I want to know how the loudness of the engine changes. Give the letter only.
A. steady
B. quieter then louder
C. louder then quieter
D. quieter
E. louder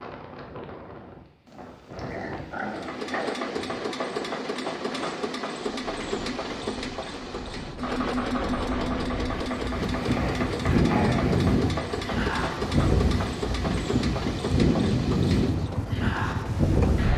A.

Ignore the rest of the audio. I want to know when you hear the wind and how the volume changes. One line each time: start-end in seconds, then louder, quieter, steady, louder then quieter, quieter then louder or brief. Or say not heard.
0.0-17.1 louder.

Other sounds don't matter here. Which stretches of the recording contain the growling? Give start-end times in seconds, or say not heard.
1.4-3.4, 9.9-11.4.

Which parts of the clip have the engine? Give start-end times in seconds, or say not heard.
2.6-17.1.